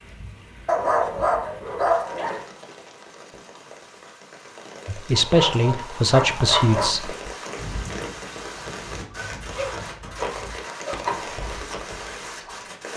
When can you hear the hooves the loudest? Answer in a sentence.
The loudest moment of the hooves is at 11 seconds.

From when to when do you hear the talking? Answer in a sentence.
You can hear the talking from 4.8 to 7.2 s.